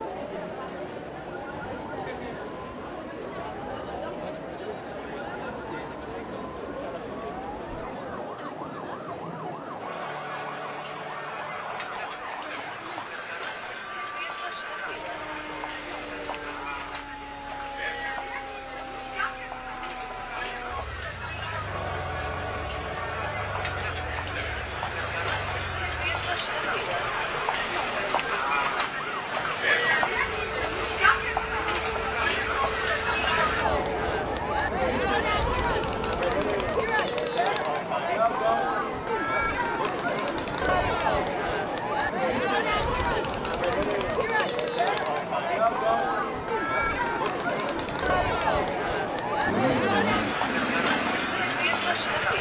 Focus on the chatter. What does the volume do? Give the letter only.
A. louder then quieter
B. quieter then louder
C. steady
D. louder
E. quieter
D.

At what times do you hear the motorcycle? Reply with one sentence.
You can hear the motorcycle from 49.5 to 52.3 s.